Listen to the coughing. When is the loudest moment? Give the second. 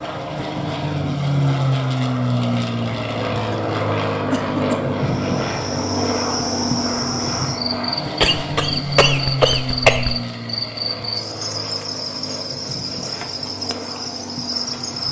10 s.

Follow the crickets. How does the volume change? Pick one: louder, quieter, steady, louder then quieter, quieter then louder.
steady.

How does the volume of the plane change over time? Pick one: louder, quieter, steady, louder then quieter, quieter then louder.
quieter.